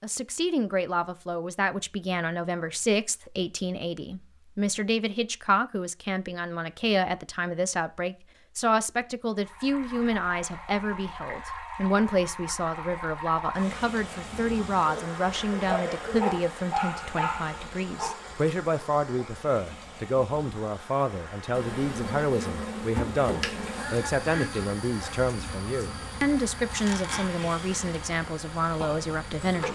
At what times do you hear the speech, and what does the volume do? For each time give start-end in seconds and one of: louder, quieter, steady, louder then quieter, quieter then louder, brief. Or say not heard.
0.0-29.7 steady.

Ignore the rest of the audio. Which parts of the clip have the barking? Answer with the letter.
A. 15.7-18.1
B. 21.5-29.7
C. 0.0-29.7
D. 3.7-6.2
A.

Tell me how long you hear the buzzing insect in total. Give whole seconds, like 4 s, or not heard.
8 s.